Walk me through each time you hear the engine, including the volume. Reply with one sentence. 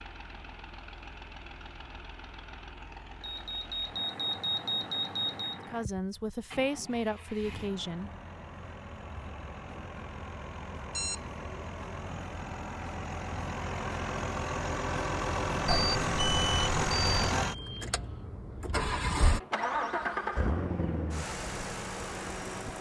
The engine can be heard from 0.0 to 22.7 s, getting louder.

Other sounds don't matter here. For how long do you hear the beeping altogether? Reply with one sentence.
You can hear the beeping for 5 seconds altogether.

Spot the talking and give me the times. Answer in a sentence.
The talking can be heard from 5.7 to 8.1 s.